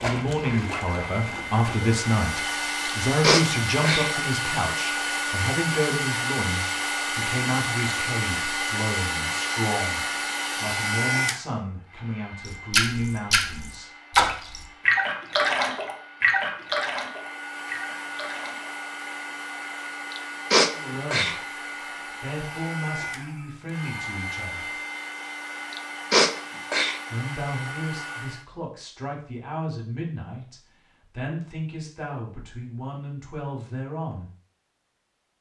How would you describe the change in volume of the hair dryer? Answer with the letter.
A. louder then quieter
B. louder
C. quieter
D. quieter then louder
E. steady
D.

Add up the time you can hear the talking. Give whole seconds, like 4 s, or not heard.
24 s.